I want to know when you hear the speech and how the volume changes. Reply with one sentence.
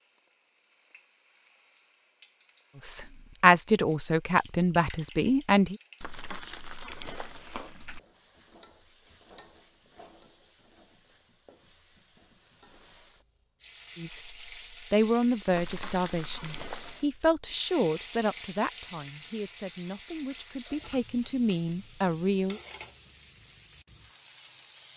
You can hear the speech briefly from 2.8 to 5.8 s; and from 13.9 to 22.6 s, getting quieter then louder.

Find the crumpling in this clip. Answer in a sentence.
The crumpling can be heard from 6.0 to 8.0 s and from 15.5 to 17.1 s.